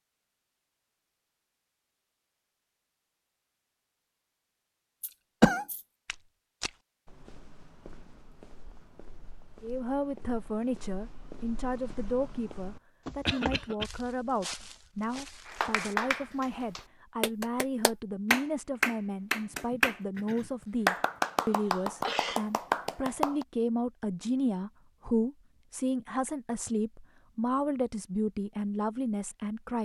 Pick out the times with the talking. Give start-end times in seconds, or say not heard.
9.6-29.7.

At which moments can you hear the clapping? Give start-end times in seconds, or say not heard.
15.4-23.4.